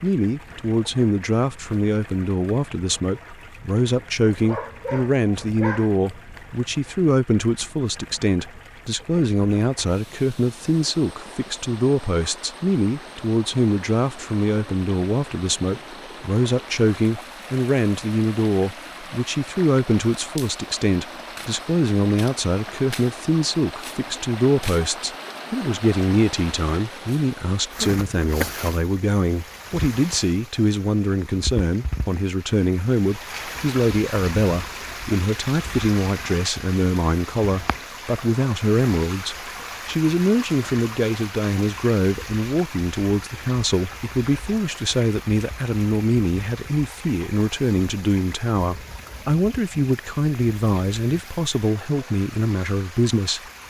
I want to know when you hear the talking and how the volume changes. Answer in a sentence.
You can hear the talking from 0.0 to 53.4 s, at a steady volume.